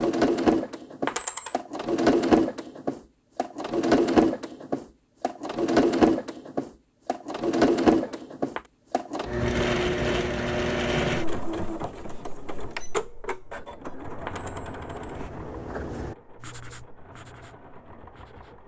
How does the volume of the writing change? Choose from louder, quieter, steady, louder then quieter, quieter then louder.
louder then quieter.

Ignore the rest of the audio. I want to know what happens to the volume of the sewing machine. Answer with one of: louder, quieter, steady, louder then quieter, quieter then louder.
quieter.